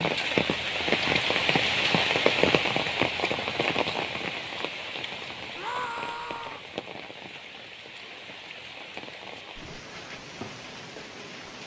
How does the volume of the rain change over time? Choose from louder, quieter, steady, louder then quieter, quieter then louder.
quieter.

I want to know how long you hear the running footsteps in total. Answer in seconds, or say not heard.
not heard.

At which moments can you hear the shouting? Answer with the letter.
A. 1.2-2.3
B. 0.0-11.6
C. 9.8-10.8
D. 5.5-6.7
D.